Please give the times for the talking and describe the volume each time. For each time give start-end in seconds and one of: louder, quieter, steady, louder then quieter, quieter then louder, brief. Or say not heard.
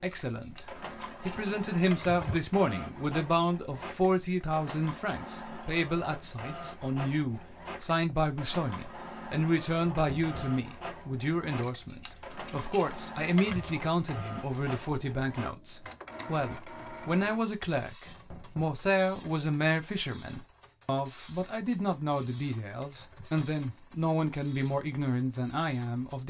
0.0-26.2 steady.